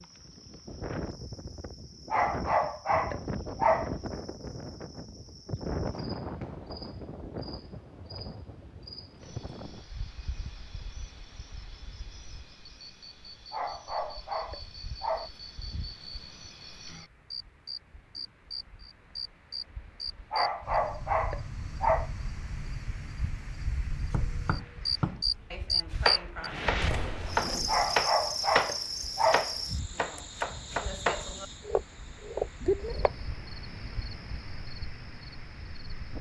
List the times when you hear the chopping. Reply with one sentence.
You can hear the chopping from 24.1 to 33.1 s.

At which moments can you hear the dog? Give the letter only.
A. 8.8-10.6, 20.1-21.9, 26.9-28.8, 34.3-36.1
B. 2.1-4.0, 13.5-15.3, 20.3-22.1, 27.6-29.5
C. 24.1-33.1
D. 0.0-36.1
B.